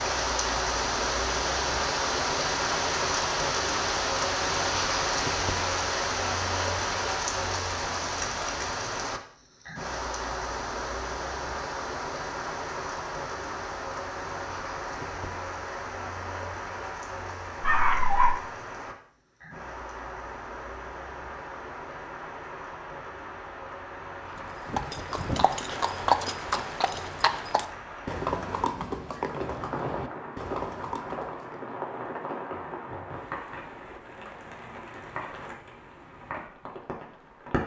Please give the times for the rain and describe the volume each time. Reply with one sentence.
The rain can be heard from 0.0 to 37.6 s, getting quieter.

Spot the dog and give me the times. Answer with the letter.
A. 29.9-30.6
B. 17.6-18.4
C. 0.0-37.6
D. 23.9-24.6
B.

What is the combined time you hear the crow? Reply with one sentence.
The crow can't be heard in this clip.